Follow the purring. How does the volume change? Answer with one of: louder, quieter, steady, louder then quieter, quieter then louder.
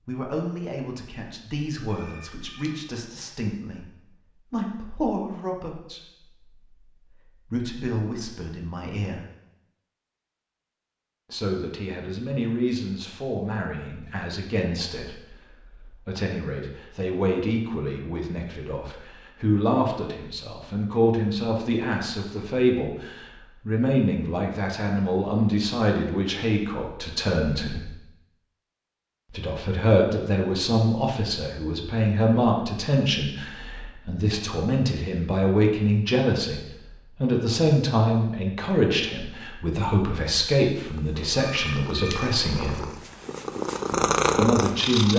louder.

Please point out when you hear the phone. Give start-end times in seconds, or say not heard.
1.9-2.9, 41.5-42.3.